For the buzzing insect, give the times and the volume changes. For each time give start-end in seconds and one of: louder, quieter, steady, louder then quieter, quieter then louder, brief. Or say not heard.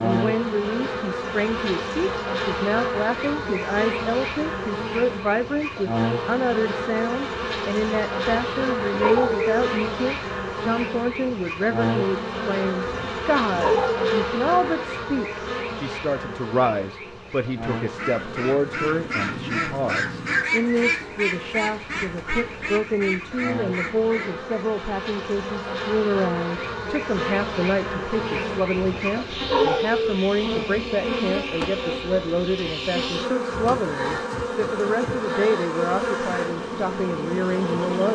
0.0-38.1 quieter then louder.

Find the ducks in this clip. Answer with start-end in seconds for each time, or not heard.
17.6-24.4.